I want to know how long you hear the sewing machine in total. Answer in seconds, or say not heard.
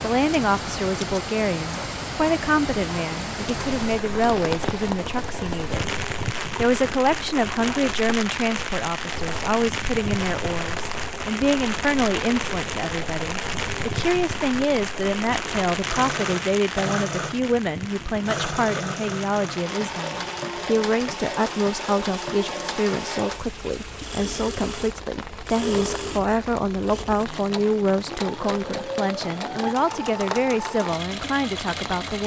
29 s.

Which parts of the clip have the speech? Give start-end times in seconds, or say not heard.
0.0-5.9, 6.5-32.2.